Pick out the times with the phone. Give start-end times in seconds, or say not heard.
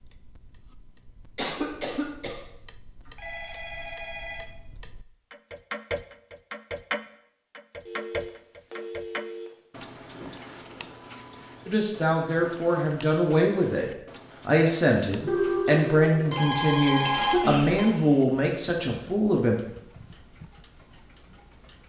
3.0-4.5, 7.8-9.5, 15.2-17.9.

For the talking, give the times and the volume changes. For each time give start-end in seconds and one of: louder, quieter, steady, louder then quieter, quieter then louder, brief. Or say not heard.
11.7-19.6 steady.